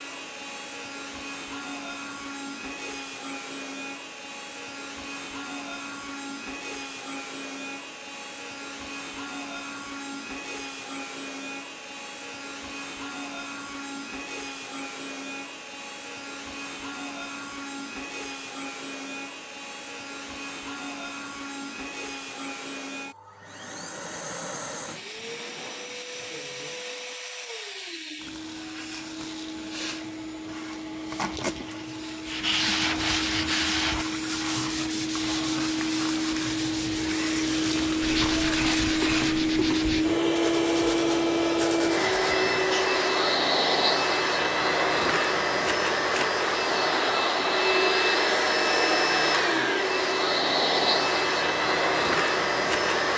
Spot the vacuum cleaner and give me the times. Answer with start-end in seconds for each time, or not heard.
0.0-53.1.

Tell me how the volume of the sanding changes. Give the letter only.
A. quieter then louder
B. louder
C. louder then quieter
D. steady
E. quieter
E.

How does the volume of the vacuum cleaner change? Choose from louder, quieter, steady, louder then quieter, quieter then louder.
louder.